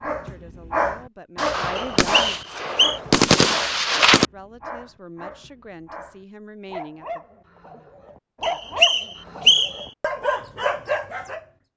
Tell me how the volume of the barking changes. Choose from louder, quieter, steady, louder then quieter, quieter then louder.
quieter then louder.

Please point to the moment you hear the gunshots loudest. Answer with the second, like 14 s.
3 s.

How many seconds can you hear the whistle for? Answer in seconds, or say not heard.
3 s.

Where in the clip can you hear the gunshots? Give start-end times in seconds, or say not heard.
1.4-4.2.